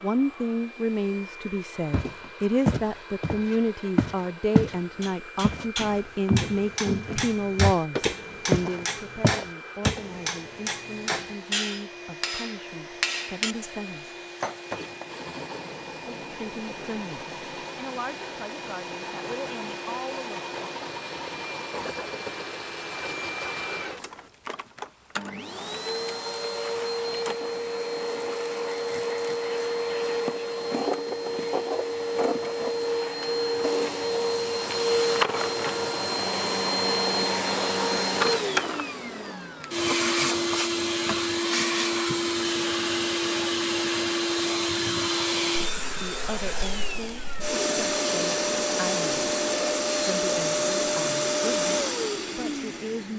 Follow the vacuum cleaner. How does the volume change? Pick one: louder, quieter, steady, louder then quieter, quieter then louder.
louder.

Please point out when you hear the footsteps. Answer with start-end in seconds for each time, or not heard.
1.9-4.8, 5.4-10.0.